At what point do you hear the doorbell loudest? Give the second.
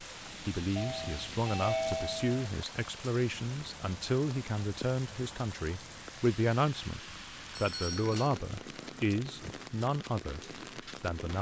2 s.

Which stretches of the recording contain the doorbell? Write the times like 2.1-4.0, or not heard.
0.8-2.5, 7.5-8.3.